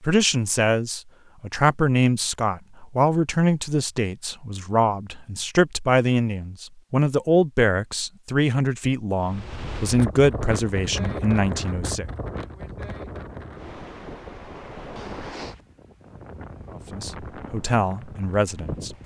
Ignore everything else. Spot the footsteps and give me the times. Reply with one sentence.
You can't hear the footsteps here.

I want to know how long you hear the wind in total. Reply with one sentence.
You can hear the wind for 10 seconds altogether.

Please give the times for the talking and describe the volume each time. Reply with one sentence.
The talking can be heard from 0.0 to 12.1 s, at a steady volume; and briefly from 16.7 to 18.9 s.